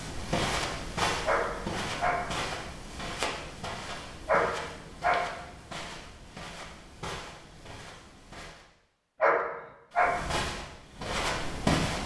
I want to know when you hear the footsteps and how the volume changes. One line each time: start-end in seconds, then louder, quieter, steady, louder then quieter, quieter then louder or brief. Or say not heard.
0.0-8.7 quieter
9.9-12.0 brief.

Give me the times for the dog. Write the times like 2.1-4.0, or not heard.
1.2-2.4, 4.2-5.3, 9.2-10.3.